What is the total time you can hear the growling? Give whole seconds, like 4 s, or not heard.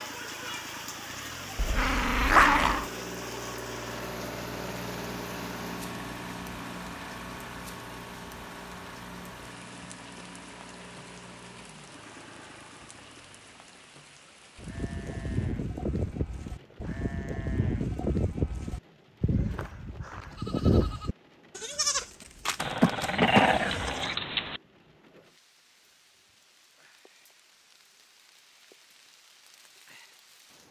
3 s.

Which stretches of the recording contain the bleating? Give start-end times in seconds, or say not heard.
14.6-24.1.